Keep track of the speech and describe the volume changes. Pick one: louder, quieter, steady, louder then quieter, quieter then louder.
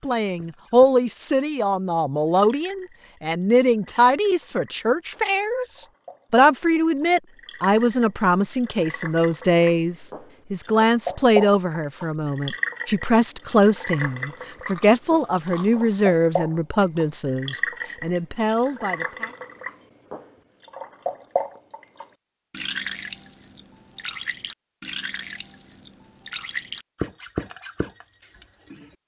steady.